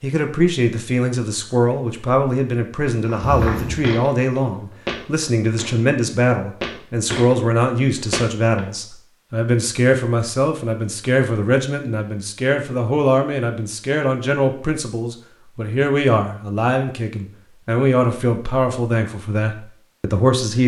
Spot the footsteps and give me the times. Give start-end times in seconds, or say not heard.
3.0-8.7.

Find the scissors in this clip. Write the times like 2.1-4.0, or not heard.
3.2-3.9.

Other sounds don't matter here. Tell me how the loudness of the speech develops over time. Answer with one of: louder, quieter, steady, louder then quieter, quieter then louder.
steady.